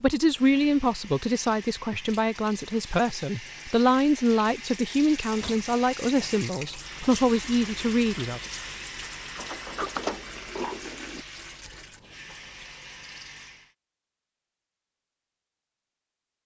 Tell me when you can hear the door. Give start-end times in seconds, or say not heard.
5.2-5.7, 9.3-11.2.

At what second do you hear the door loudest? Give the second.
10 s.